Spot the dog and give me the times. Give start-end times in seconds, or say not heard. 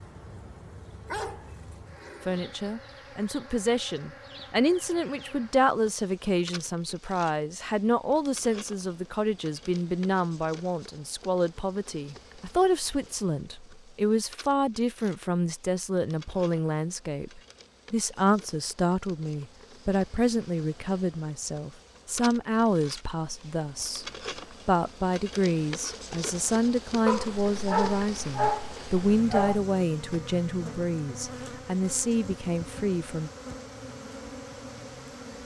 1.1-2.4, 27.1-29.6.